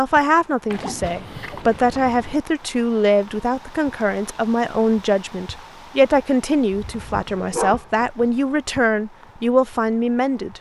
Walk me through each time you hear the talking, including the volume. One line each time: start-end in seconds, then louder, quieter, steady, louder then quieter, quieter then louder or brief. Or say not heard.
0.0-10.5 steady.